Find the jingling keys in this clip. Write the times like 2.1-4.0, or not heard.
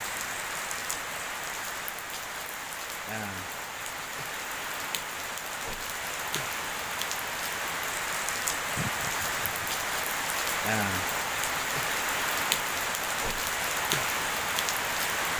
8.8-9.8.